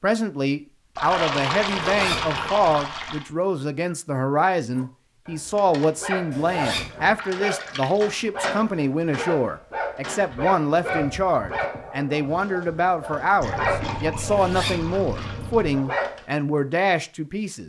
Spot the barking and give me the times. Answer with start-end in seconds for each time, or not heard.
4.8-16.2.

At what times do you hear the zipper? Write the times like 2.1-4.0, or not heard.
1.6-2.5, 6.3-7.2, 14.2-14.8.